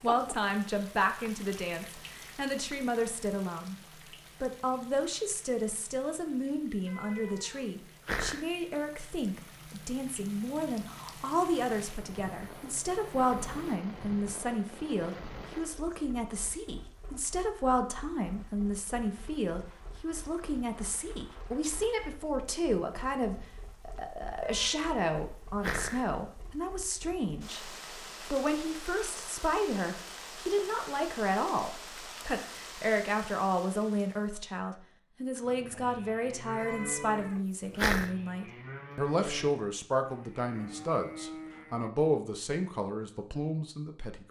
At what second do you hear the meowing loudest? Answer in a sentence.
The volume of the meowing peaks at 38 seconds.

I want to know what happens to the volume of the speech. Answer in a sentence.
The loudness of the speech stays about the same.